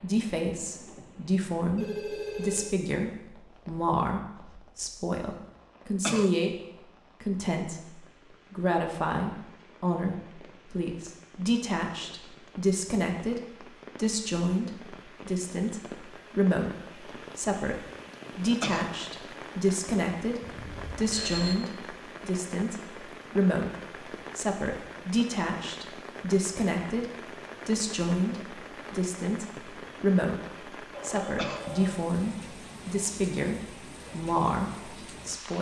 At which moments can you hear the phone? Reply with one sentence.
The phone can be heard from 1.8 to 2.8 s, from 20.4 to 21.6 s and from 30.9 to 32.0 s.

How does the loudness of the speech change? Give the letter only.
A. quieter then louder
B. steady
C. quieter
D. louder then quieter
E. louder
B.